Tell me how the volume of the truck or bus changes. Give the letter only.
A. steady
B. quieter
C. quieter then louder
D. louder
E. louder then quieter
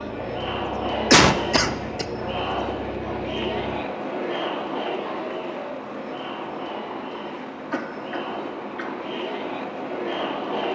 A.